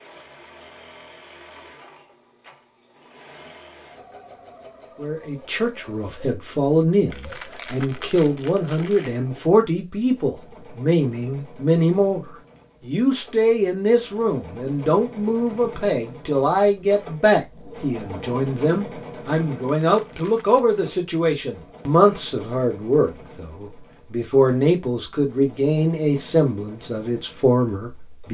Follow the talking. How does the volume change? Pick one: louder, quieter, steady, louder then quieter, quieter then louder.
steady.